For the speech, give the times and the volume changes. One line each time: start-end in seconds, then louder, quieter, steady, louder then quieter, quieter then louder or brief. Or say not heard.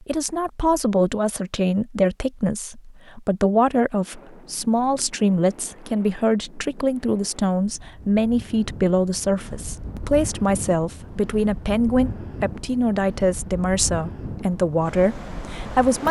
0.0-16.0 steady.